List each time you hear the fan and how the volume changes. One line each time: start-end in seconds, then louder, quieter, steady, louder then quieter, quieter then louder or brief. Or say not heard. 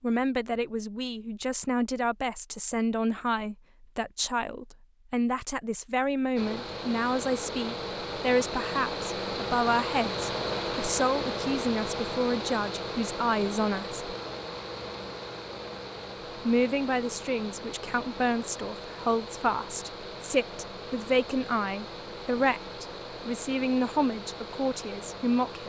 6.3-25.6 quieter.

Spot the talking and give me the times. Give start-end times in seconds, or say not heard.
0.0-14.0, 16.4-25.6.